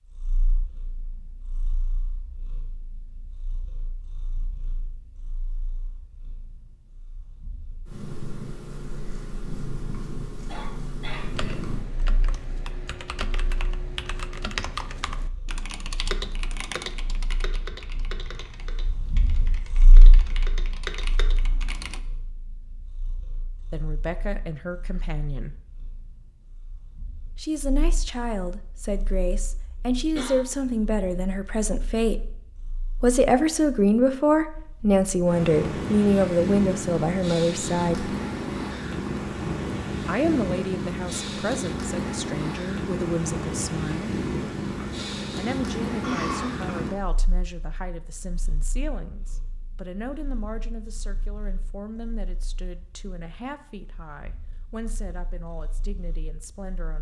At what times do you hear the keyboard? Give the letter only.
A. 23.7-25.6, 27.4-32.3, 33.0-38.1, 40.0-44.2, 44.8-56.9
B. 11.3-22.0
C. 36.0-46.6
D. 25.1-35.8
B.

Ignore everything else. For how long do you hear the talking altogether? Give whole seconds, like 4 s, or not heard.
28 s.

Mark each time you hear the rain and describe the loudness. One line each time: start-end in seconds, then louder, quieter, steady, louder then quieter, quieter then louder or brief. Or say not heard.
not heard.